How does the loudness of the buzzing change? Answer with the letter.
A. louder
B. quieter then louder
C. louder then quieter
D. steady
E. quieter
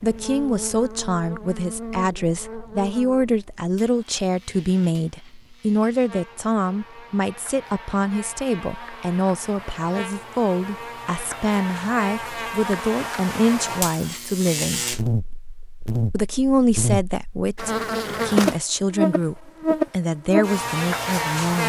B.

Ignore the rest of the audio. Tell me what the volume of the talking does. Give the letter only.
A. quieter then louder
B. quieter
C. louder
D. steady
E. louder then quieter
D.